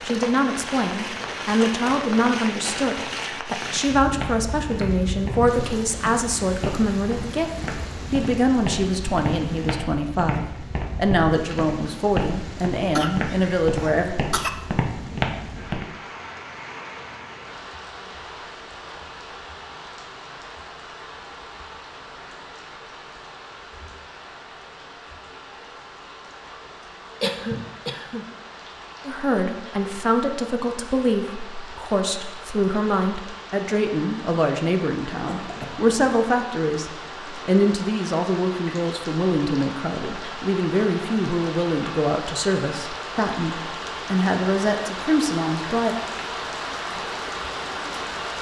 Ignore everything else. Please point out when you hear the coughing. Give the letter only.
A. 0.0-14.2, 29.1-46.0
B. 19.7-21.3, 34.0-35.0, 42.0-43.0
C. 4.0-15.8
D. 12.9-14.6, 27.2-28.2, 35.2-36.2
D.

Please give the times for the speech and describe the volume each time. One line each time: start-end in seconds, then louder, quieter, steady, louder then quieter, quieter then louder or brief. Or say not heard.
0.0-14.2 steady
29.1-46.0 steady.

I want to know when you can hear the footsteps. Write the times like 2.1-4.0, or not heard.
4.0-15.8.